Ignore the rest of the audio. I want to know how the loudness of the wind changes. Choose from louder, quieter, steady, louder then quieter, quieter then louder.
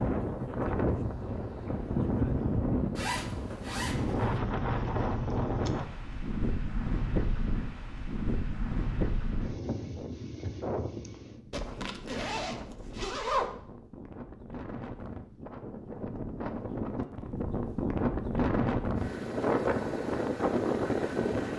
quieter then louder.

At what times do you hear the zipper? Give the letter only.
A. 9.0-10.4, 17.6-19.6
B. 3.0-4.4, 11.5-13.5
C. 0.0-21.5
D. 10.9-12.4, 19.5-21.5
B.